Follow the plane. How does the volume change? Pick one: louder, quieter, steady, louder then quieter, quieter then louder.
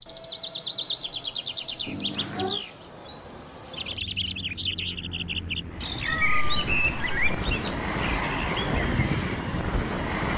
louder.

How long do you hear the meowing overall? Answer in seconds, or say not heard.
2 s.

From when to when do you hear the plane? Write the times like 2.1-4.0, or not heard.
0.0-10.3.